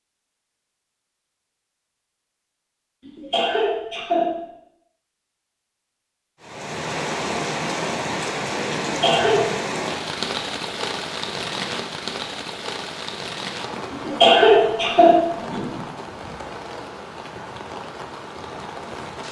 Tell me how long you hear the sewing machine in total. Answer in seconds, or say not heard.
not heard.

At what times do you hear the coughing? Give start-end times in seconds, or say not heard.
3.0-4.3, 8.8-9.4, 13.9-15.8.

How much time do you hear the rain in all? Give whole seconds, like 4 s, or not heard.
13 s.